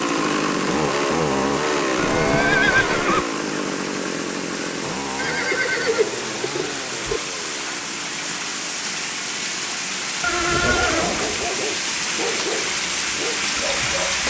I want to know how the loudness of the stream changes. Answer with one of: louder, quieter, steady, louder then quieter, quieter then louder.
louder.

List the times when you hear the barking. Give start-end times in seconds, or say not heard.
10.7-14.2.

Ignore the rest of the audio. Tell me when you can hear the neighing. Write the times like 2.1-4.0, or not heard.
1.9-3.2, 5.2-7.2, 10.2-11.4.